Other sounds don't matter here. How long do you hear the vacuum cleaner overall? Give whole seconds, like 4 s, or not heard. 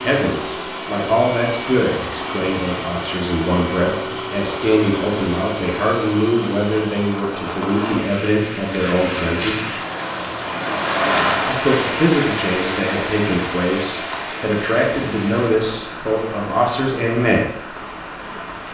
7 s.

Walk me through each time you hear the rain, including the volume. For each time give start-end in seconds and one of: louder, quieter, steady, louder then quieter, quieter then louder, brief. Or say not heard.
0.0-18.6 louder then quieter.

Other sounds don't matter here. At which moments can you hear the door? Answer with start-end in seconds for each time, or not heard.
not heard.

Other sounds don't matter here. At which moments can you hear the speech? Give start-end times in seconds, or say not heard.
0.0-9.7, 11.4-17.5.